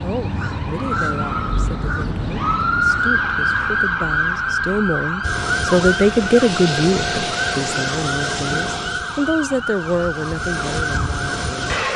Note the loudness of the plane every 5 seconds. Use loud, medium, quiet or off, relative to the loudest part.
off, loud, loud.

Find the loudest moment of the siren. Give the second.
3 s.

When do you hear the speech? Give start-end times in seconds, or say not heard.
0.0-11.7.